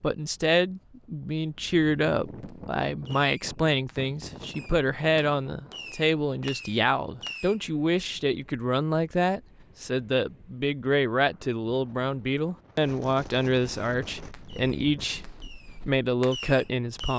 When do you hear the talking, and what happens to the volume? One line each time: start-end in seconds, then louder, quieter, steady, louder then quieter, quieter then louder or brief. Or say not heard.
0.0-17.1 steady.